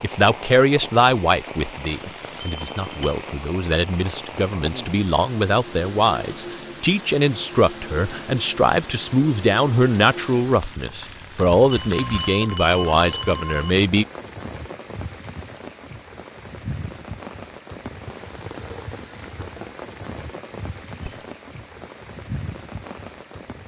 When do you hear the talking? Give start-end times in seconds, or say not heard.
0.0-14.1.